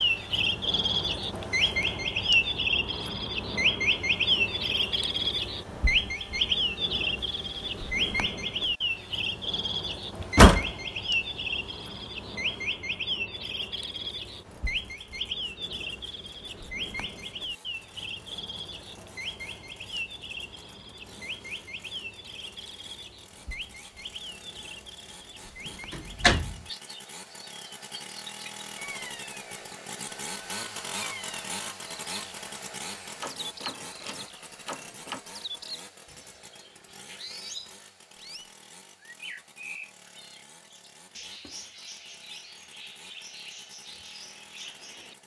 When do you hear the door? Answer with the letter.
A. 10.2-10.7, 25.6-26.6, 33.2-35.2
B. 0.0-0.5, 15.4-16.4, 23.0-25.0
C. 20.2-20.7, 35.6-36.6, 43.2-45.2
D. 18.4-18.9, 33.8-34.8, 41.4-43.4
A.